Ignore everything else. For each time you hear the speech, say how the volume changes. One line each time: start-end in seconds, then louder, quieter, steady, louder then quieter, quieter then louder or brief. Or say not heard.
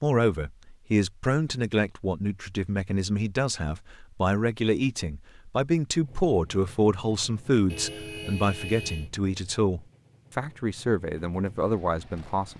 0.0-12.5 steady.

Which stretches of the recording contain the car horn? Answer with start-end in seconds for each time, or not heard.
7.7-9.1.